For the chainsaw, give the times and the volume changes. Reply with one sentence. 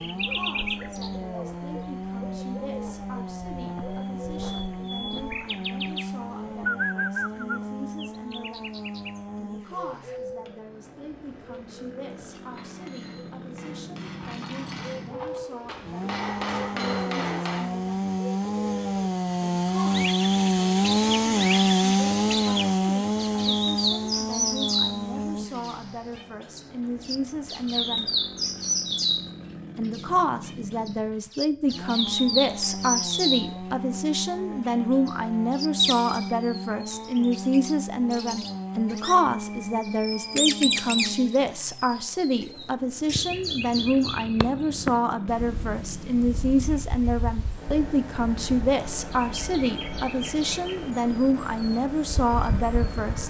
The chainsaw can be heard from 0.0 to 53.2 s, getting louder then quieter.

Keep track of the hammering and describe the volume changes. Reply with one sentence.
The volume of the hammering goes up.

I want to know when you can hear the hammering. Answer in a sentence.
The hammering can be heard from 9.9 to 17.8 s.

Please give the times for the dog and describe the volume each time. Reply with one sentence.
You can't hear the dog here.